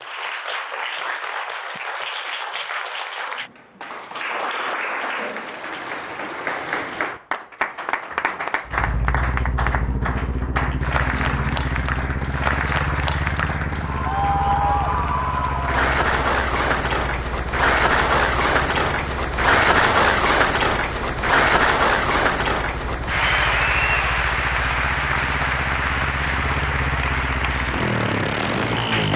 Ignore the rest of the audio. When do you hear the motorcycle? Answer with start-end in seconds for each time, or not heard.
8.7-29.1.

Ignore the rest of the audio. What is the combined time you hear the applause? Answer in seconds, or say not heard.
29 s.